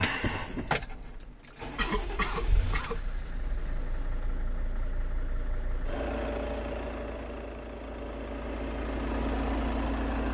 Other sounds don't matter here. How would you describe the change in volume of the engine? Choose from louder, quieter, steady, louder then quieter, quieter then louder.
quieter then louder.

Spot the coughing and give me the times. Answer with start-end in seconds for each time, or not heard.
1.0-3.0.